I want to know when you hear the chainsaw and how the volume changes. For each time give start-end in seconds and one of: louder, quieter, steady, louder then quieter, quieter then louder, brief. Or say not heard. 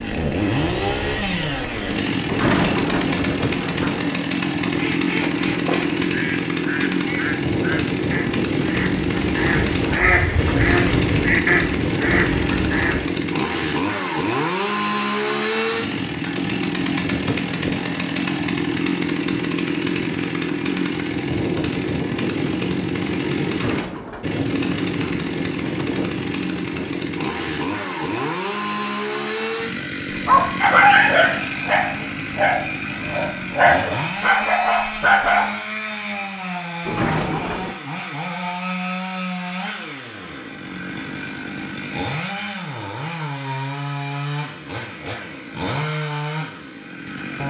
0.0-47.4 quieter.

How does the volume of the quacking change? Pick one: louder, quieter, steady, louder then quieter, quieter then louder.
louder.